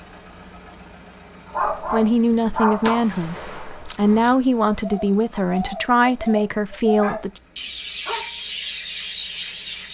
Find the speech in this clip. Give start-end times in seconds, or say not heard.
1.8-7.3.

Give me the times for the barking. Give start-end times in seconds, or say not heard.
1.5-3.1, 7.0-8.3.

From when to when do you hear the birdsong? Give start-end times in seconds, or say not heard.
4.0-9.9.